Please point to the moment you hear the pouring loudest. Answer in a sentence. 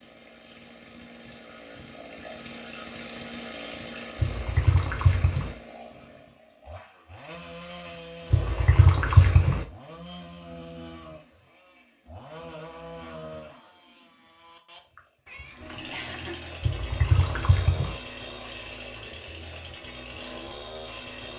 The loudest moment of the pouring is at 9 seconds.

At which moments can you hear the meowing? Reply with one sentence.
You can hear the meowing from 15.2 to 16.6 s.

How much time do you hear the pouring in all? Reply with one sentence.
You can hear the pouring for 4 seconds altogether.